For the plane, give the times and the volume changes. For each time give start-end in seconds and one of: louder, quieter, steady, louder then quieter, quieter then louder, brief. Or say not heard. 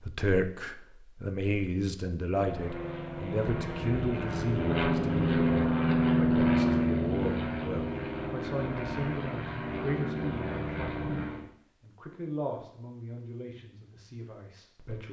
2.4-11.4 louder then quieter.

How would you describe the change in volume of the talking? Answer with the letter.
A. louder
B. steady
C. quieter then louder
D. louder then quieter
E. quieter
E.